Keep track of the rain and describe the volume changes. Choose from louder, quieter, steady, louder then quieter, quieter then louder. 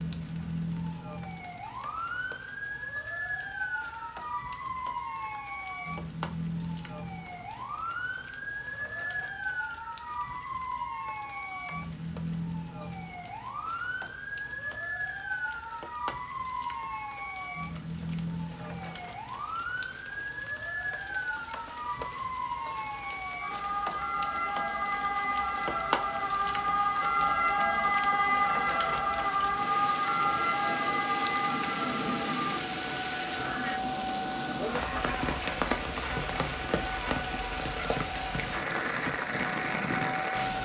louder.